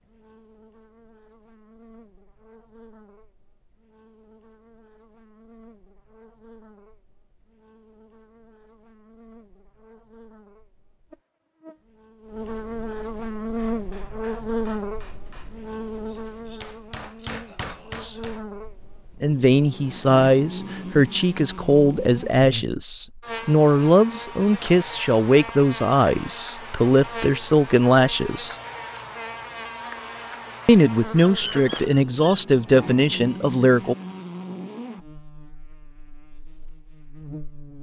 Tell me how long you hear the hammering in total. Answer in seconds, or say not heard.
5 s.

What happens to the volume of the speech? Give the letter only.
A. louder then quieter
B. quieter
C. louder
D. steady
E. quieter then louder
D.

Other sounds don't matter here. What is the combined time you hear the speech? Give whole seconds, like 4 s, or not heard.
13 s.